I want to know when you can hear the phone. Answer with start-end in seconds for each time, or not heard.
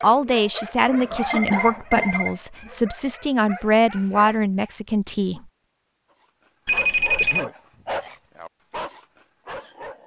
0.8-2.4, 6.7-7.5.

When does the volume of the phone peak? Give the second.
7 s.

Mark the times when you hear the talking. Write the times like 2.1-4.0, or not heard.
0.0-5.4.